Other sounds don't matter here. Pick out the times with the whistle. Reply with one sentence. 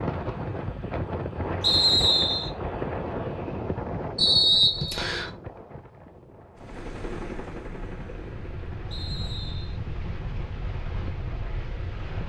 The whistle can be heard from 1.6 to 2.5 s, from 4.2 to 5.3 s and from 8.9 to 9.8 s.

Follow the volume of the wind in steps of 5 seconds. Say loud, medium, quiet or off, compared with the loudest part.
loud, medium, medium.